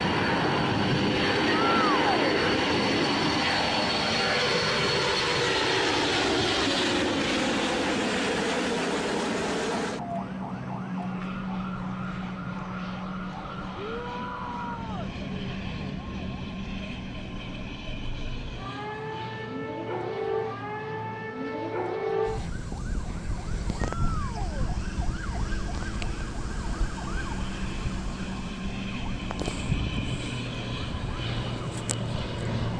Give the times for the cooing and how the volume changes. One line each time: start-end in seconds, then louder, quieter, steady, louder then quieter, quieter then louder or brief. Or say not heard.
not heard.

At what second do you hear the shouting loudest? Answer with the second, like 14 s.
2 s.